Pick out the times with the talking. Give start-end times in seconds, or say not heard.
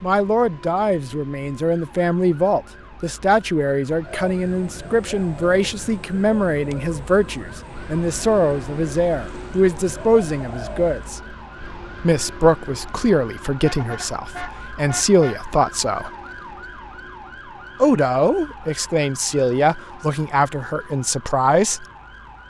0.0-11.2, 12.0-16.1, 17.8-21.9.